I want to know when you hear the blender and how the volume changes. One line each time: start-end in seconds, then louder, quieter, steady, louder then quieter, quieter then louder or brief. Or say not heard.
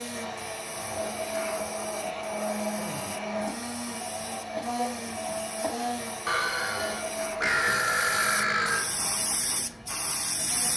0.0-10.7 quieter.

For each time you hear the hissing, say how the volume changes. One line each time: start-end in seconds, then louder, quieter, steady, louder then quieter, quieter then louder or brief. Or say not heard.
0.0-10.7 louder.